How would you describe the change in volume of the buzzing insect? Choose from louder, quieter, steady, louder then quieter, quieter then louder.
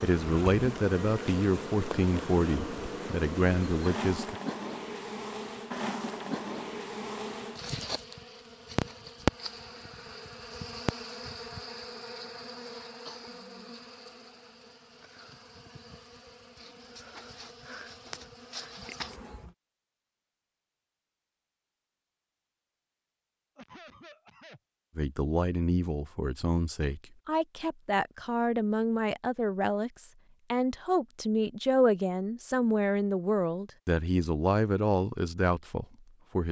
quieter.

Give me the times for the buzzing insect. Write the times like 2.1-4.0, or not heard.
0.0-19.6.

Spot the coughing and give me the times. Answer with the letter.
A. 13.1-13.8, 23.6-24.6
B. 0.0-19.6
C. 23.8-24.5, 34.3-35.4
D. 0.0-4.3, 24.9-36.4
A.